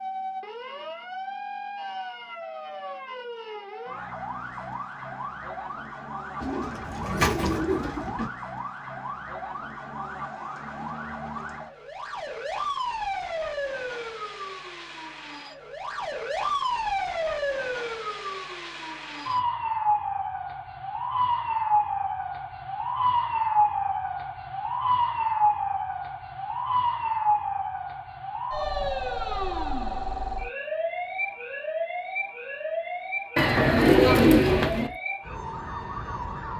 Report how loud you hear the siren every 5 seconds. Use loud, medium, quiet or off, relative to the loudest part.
medium, medium, medium, loud, loud, loud, medium, medium.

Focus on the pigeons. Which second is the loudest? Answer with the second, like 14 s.
34 s.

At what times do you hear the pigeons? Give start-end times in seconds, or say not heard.
6.4-8.3, 33.4-34.9.